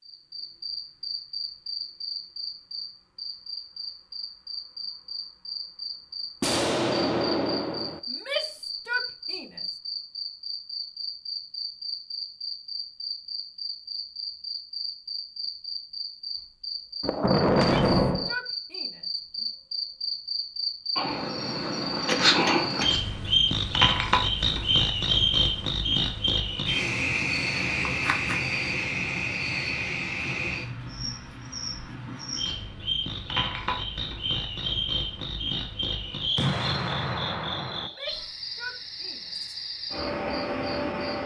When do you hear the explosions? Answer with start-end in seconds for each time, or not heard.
6.4-8.0, 17.0-18.4, 36.4-37.9.